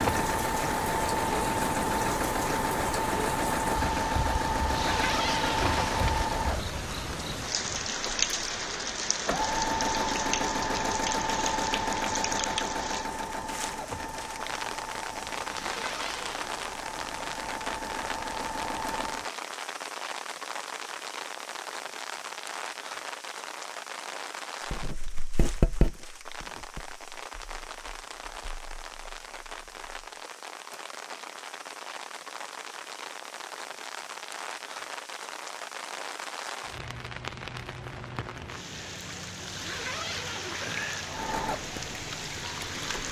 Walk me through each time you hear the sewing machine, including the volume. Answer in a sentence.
You can hear the sewing machine from 0.0 to 19.3 s, getting quieter; and briefly from 41.0 to 43.0 s.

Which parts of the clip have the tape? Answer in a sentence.
The tape can't be heard in this clip.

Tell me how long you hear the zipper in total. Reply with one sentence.
The zipper can be heard for 4 seconds in total.